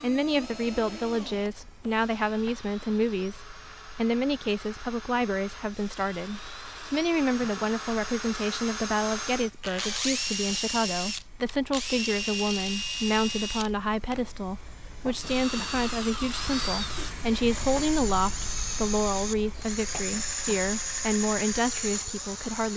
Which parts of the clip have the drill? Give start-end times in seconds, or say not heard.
0.0-22.7.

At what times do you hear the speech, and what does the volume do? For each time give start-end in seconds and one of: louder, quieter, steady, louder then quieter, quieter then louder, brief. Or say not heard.
0.0-22.7 steady.